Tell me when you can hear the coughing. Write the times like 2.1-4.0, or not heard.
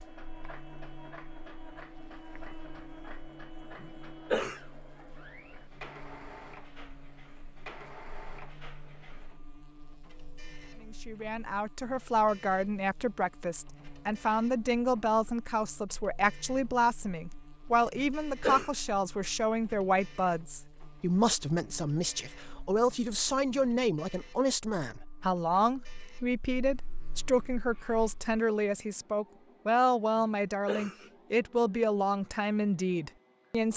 3.8-4.6, 17.9-18.7, 30.1-31.1.